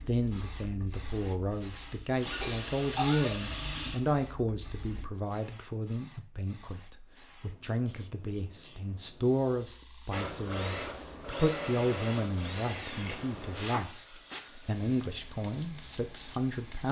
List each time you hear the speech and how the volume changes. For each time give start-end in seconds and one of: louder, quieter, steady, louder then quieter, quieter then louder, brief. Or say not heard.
0.0-16.8 steady.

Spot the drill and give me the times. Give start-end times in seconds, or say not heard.
0.0-5.1, 10.1-14.4.